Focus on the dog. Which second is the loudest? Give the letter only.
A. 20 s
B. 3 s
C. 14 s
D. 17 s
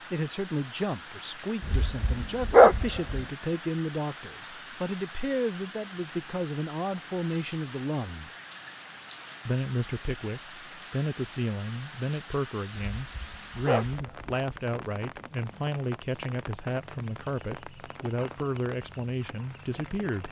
B.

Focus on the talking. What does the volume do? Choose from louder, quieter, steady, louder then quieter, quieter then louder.
steady.